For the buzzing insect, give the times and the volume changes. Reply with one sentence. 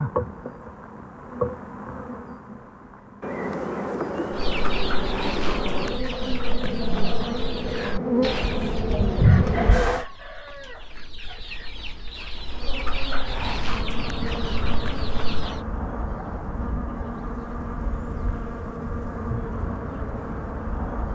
The buzzing insect can be heard from 0.0 to 10.1 s, getting louder; and from 12.5 to 21.1 s, at a steady volume.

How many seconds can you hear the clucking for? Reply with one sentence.
The clucking can be heard for 11 seconds in total.